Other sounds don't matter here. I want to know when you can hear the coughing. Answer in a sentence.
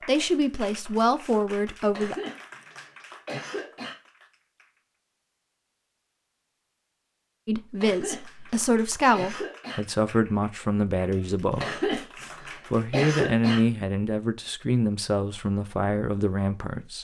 You can hear the coughing from 1.9 to 4.0 s, from 7.8 to 9.8 s and from 11.6 to 13.6 s.